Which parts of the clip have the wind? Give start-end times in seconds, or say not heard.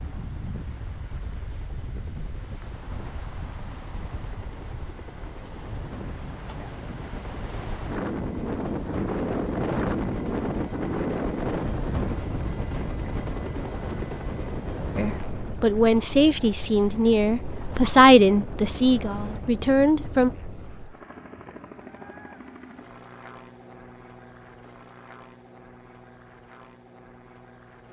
0.0-21.0.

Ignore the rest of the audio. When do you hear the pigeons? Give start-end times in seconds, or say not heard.
not heard.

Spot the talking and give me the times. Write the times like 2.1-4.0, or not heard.
14.9-20.3.